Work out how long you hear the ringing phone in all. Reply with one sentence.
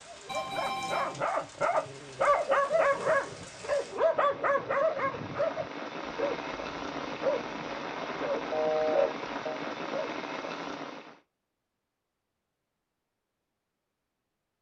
You can hear the ringing phone for 2 seconds altogether.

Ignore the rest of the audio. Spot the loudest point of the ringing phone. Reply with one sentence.
The loudest moment of the ringing phone is at 9 seconds.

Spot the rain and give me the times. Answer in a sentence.
You can hear the rain from 0.0 to 11.2 s.